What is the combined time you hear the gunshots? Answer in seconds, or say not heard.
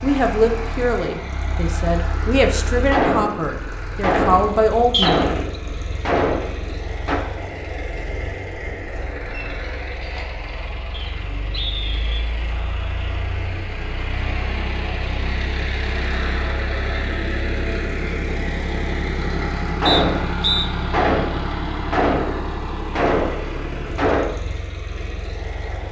9 s.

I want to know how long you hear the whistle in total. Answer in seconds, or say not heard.
3 s.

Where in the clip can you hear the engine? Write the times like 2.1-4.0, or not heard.
0.0-25.8.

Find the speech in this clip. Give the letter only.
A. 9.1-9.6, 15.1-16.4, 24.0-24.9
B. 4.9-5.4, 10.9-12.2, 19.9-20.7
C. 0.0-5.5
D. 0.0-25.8
C.